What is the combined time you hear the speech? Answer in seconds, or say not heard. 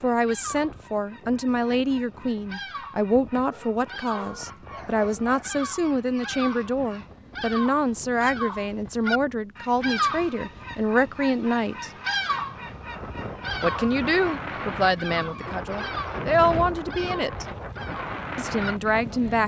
17 s.